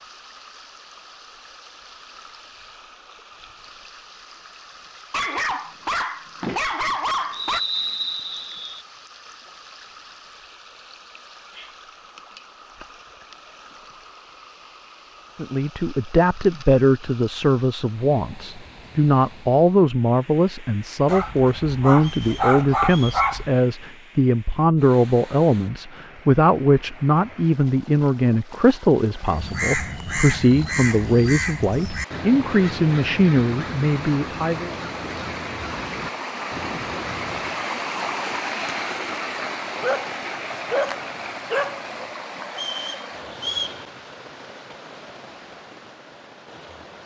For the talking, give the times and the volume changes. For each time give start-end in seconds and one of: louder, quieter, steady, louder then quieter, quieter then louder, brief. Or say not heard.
15.3-34.8 steady.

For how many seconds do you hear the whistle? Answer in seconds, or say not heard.
4 s.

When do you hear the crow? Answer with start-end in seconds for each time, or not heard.
29.2-37.6.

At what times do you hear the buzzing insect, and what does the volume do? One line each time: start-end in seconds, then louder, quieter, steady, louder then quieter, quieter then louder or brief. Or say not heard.
not heard.